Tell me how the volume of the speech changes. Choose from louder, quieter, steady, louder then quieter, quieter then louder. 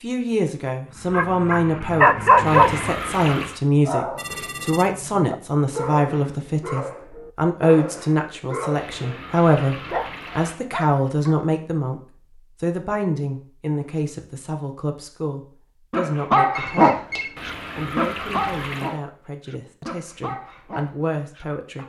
quieter.